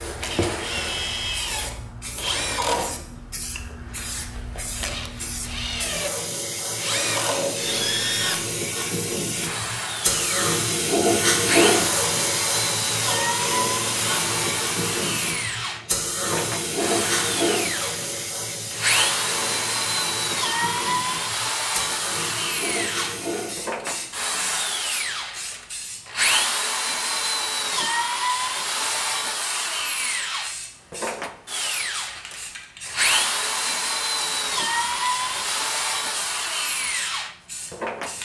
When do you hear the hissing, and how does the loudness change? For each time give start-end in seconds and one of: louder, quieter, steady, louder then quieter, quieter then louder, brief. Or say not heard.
0.0-38.1 louder then quieter.